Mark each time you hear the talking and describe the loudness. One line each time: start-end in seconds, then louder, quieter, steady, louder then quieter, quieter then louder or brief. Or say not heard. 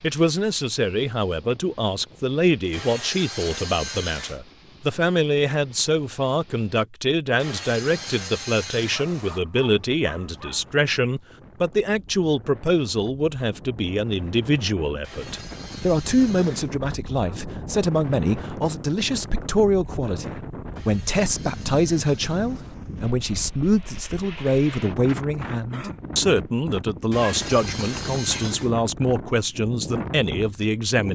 0.0-31.1 steady.